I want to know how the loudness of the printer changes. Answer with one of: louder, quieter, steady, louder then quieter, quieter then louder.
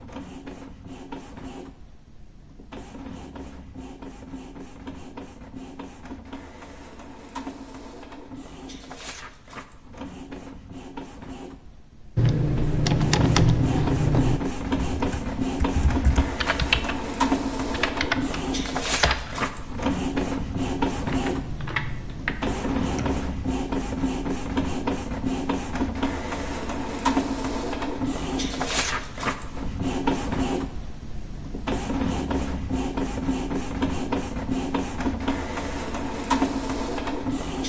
louder.